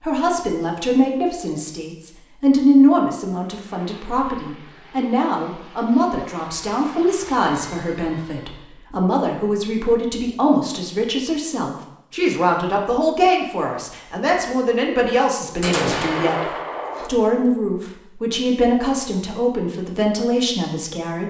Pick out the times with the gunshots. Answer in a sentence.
The gunshots can be heard from 15.6 to 17.1 s.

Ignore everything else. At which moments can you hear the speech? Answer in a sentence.
The speech can be heard from 0.0 to 16.4 s and from 17.0 to 21.2 s.